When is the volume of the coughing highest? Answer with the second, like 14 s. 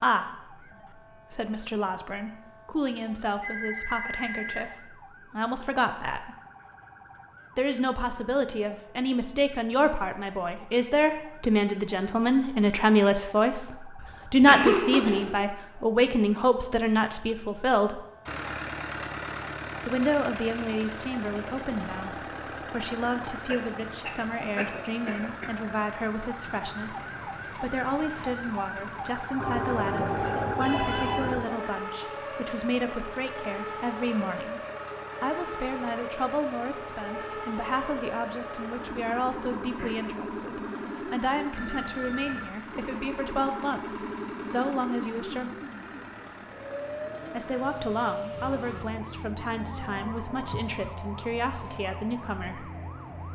15 s.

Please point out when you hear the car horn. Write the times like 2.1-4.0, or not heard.
not heard.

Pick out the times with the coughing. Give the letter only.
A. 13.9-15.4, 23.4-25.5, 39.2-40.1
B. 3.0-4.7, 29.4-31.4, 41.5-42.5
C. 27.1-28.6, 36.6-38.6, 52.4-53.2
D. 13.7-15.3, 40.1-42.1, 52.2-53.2
A.